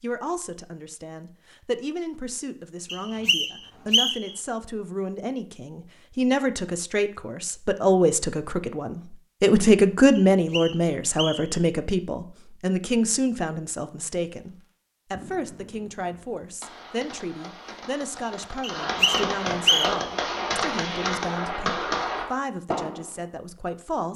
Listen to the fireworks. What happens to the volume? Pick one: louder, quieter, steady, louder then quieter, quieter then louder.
louder.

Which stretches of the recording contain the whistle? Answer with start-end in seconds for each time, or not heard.
2.9-4.3, 10.2-11.6, 18.6-20.1.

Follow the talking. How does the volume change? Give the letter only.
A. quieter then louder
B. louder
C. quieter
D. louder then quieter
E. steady
D.